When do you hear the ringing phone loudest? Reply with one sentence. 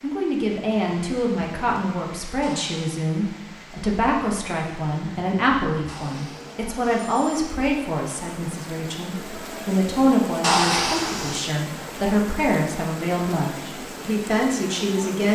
The volume of the ringing phone peaks at 11 seconds.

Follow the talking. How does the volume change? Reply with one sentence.
The volume of the talking stays about the same.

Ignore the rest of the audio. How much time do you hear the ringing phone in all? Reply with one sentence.
The ringing phone can be heard for 3 seconds in total.